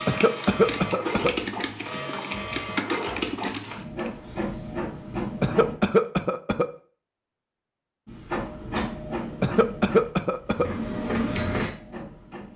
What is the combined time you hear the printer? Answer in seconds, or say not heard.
10 s.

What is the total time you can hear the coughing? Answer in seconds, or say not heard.
4 s.